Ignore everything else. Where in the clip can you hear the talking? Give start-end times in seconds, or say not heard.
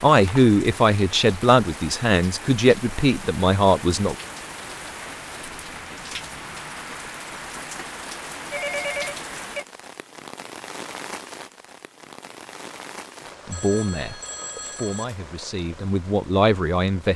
0.0-4.2, 13.4-17.1.